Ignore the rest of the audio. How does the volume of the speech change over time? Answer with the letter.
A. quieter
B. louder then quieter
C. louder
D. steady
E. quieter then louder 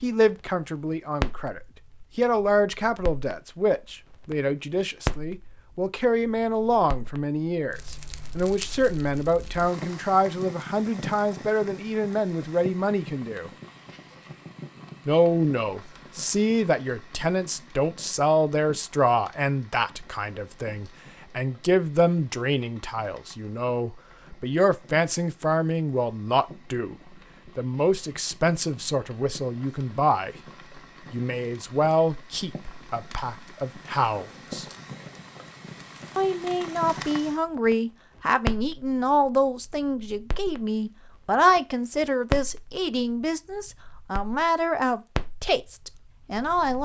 D.